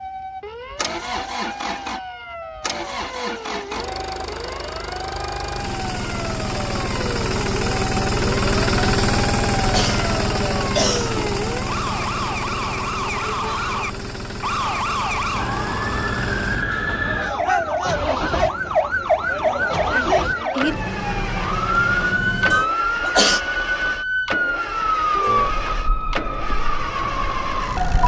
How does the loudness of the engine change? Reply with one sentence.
The loudness of the engine goes up, then down.